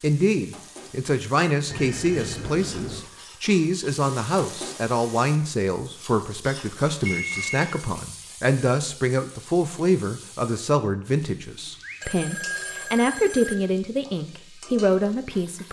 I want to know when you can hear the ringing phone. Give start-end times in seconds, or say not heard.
1.7-3.0, 7.0-7.8, 11.8-13.6.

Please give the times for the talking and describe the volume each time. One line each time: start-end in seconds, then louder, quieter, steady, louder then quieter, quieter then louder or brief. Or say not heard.
0.0-15.6 steady.